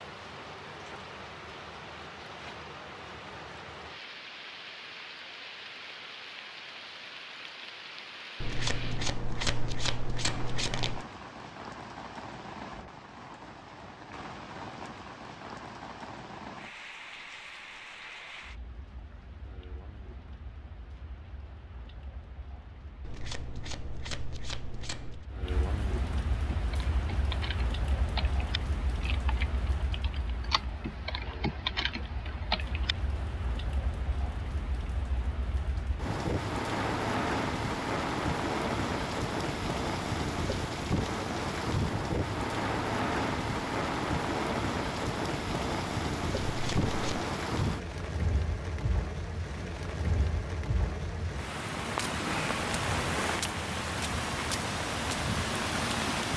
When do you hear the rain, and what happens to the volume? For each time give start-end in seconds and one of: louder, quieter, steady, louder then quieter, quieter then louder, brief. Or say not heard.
0.0-56.3 louder.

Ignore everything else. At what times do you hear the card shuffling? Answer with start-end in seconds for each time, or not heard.
8.4-11.1, 23.0-25.2, 46.5-47.2.